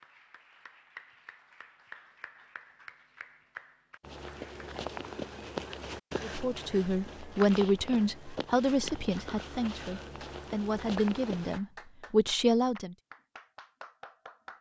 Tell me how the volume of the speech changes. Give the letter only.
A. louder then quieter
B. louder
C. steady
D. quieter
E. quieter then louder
E.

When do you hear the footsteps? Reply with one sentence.
You can hear the footsteps from 4.0 to 11.6 s.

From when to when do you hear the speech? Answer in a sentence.
You can hear the speech from 6.2 to 12.9 s.